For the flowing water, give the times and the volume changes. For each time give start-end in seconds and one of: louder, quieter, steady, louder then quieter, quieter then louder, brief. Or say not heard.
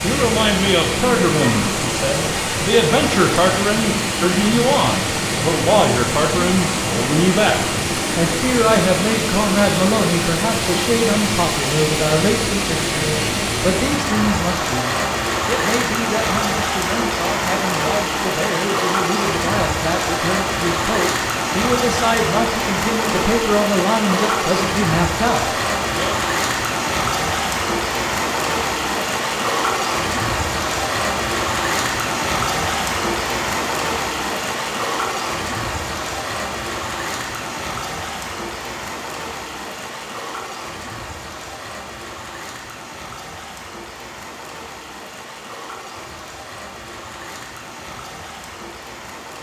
0.0-49.3 quieter.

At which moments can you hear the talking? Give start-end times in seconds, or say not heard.
0.0-26.1.